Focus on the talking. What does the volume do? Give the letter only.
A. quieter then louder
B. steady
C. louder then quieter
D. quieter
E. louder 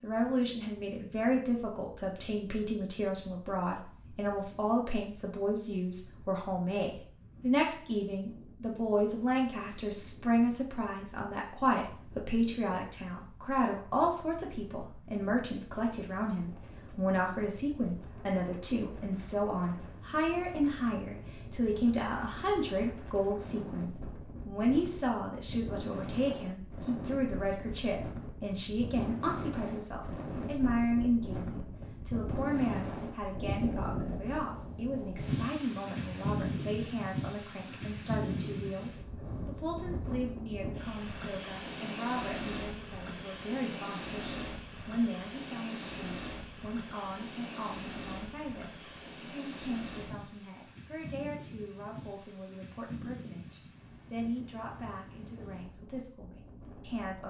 D.